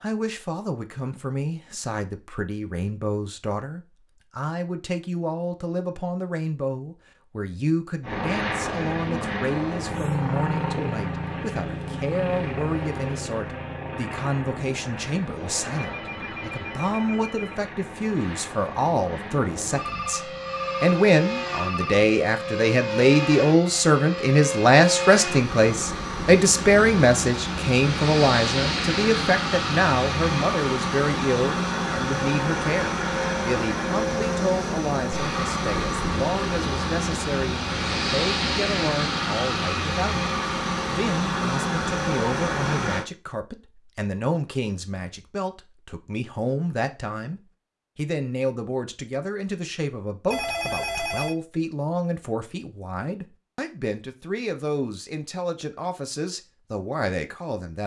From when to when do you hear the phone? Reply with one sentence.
You can hear the phone from 15.8 to 17.7 s, from 19.7 to 22.1 s and from 50.3 to 51.4 s.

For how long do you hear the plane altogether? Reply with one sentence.
The plane can be heard for 35 seconds in total.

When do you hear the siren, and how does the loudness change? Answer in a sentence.
The siren can't be heard in this clip.